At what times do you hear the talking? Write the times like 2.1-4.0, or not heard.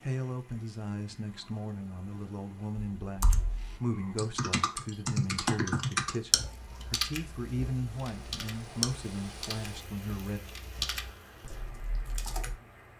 0.0-10.4.